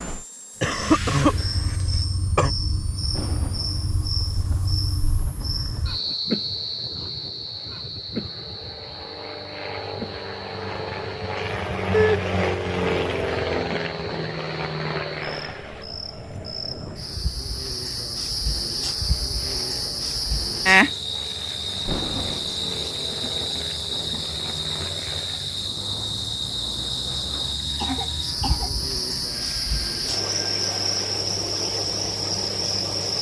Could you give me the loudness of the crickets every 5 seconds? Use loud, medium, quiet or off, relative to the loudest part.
medium, medium, quiet, medium, loud, loud, loud.